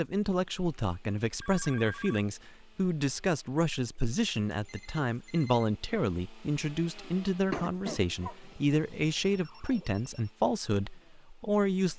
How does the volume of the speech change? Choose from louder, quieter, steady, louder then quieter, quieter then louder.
steady.